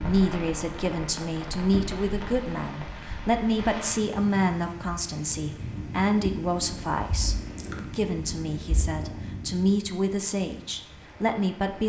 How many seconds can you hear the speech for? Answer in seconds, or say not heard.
12 s.